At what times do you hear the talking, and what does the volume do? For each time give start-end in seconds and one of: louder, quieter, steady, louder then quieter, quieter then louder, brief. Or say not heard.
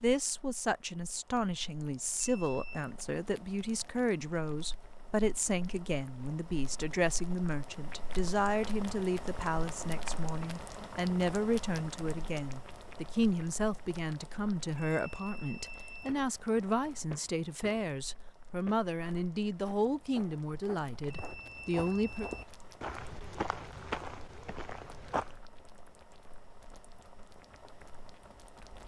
0.0-22.3 steady.